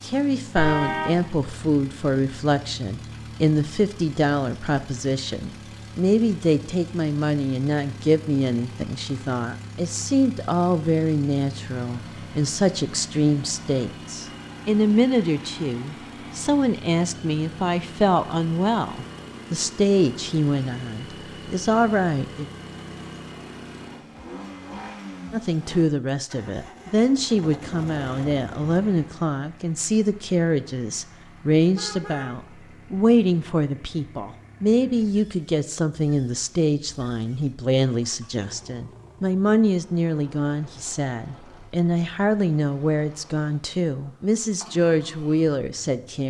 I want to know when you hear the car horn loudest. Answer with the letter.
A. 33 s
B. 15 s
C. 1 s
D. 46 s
C.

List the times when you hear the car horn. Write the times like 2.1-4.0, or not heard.
0.6-1.2, 31.8-32.4.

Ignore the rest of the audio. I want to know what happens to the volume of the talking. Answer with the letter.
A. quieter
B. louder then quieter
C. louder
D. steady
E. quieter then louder
D.